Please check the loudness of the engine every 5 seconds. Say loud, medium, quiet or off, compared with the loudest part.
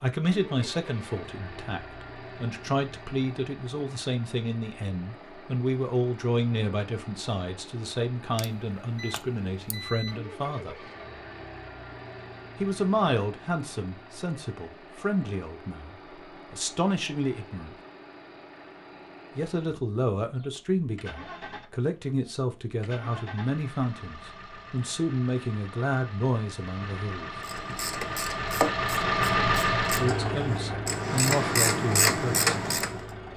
quiet, quiet, quiet, quiet, quiet, loud, loud.